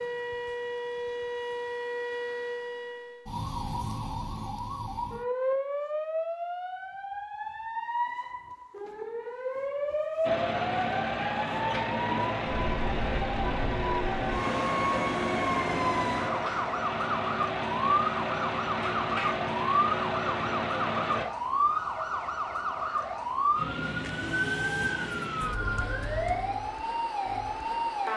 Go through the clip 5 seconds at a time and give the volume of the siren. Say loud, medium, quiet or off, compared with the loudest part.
medium, loud, loud, loud, loud, loud.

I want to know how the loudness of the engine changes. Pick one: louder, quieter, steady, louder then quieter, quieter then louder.
steady.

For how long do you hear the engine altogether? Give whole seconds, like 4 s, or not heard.
11 s.